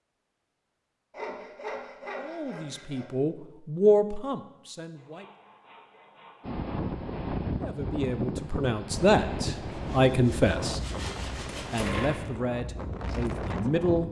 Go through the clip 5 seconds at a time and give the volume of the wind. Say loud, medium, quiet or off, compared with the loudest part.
off, loud, loud.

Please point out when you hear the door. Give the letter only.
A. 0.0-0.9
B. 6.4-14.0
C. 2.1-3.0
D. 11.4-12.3
D.